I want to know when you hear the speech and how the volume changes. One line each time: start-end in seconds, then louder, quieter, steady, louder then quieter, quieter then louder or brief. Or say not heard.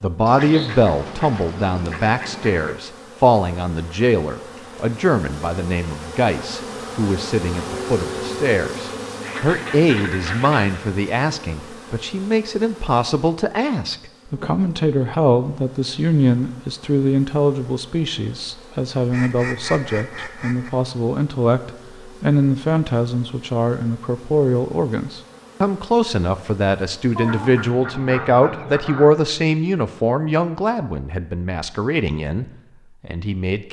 0.0-33.6 steady.